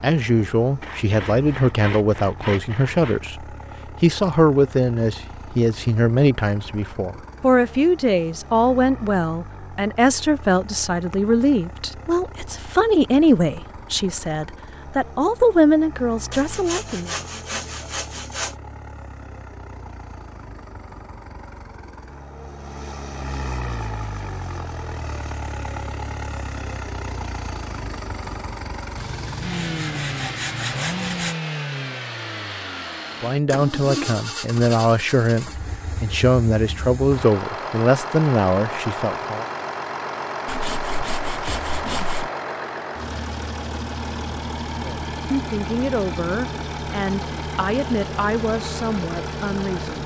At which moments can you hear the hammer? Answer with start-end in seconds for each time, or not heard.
not heard.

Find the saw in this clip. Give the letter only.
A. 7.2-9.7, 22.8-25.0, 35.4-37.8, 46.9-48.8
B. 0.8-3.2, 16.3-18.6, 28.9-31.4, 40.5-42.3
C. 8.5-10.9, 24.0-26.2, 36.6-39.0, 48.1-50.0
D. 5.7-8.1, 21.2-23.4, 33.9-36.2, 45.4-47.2
B.